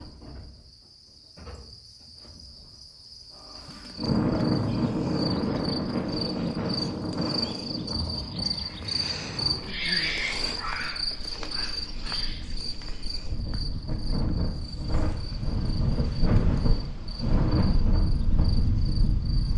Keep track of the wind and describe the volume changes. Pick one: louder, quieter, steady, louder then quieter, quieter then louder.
quieter then louder.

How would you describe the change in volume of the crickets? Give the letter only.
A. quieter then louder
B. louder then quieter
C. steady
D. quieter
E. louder
B.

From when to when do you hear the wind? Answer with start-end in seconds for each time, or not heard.
4.0-19.5.